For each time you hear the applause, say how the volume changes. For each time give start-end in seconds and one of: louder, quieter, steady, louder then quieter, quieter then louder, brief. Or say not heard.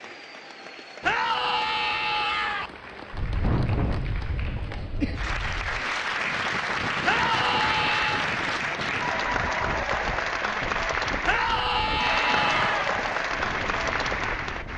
0.0-14.7 louder.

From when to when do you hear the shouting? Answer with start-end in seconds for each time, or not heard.
1.0-2.7, 7.0-8.3, 11.2-12.9.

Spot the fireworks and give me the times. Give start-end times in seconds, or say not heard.
not heard.